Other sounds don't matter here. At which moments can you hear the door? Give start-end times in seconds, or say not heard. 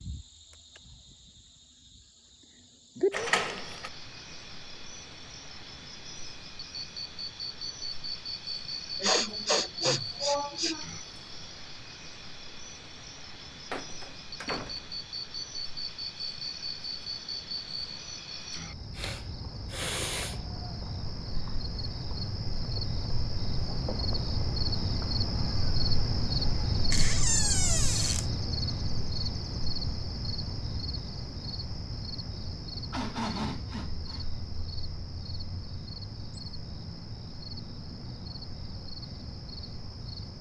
3.1-3.9, 13.7-15.0, 26.9-28.2.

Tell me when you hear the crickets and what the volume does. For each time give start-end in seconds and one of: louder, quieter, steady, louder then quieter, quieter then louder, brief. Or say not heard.
0.0-40.3 louder then quieter.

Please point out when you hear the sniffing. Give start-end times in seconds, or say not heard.
9.0-10.8, 18.9-20.4, 32.9-34.2.